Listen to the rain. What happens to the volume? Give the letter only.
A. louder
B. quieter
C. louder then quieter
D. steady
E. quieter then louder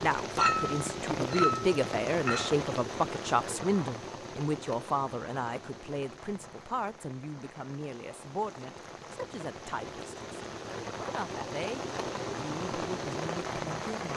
E.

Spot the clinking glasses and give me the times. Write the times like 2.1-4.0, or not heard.
0.3-2.5.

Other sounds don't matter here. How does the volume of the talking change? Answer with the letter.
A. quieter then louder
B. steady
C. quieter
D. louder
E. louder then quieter
C.